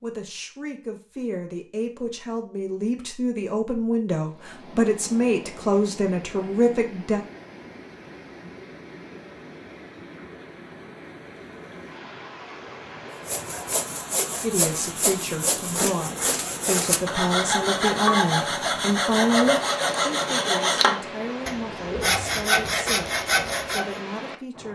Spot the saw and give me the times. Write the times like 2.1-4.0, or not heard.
13.2-23.9.